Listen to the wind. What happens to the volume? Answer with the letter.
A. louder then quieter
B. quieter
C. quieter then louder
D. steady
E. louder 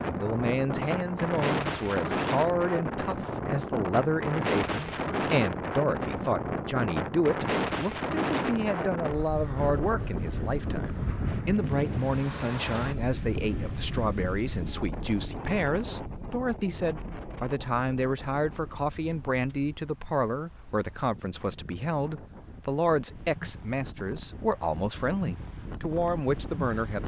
B.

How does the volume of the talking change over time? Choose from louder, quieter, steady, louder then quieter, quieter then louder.
steady.